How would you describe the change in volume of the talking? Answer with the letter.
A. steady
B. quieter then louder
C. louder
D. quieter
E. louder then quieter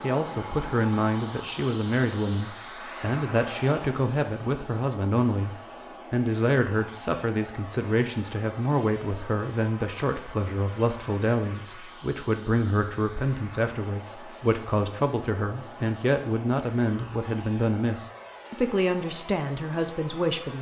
A.